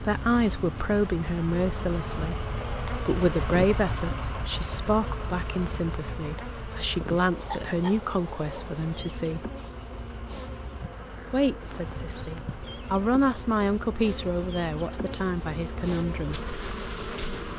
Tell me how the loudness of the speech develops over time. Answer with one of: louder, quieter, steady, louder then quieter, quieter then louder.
steady.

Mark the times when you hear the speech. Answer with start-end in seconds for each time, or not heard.
0.0-9.5, 11.3-16.4.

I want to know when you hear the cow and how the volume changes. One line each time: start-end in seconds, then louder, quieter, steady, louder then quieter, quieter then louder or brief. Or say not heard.
not heard.